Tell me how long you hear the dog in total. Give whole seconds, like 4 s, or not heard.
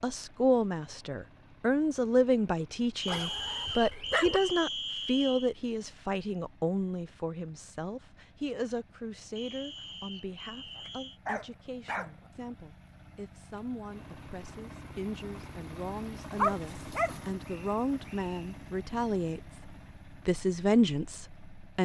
4 s.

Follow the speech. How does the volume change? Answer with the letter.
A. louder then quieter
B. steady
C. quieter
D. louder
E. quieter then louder
E.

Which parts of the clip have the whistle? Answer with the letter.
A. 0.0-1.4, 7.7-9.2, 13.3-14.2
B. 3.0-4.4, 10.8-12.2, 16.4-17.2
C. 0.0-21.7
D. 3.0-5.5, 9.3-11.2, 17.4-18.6
D.